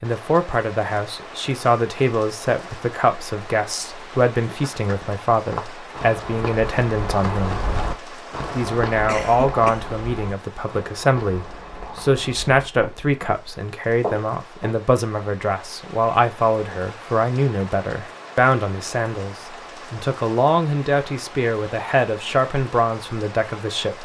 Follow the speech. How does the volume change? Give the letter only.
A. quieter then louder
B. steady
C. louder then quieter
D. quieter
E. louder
B.